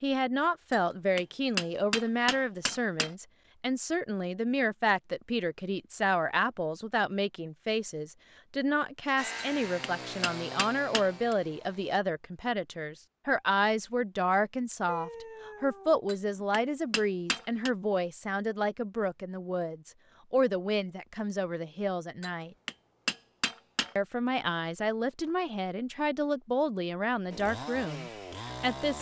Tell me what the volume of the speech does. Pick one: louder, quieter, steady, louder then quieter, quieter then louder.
steady.